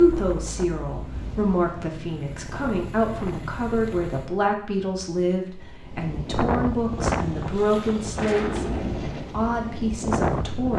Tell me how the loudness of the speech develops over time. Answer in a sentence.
The loudness of the speech stays about the same.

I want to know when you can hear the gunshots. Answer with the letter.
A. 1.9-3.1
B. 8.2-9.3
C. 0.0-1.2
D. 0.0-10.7
B.